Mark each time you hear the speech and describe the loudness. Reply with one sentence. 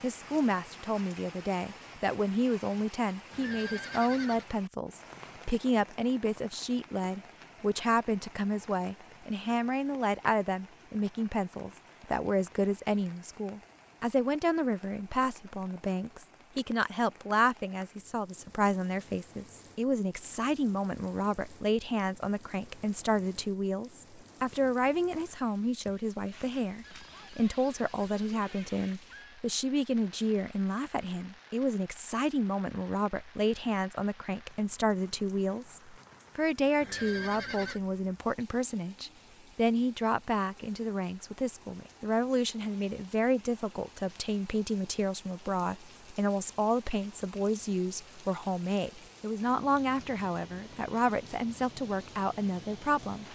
You can hear the speech from 0.0 to 53.2 s, at a steady volume.